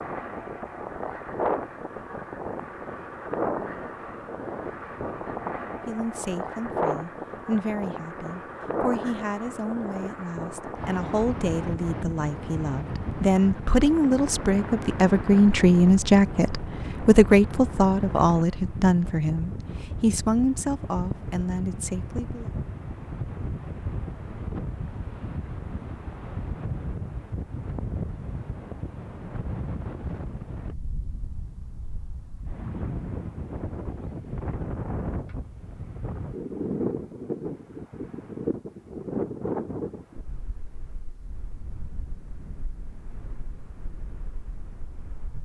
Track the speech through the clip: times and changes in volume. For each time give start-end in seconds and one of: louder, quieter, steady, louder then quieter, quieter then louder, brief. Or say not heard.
5.8-22.5 louder then quieter.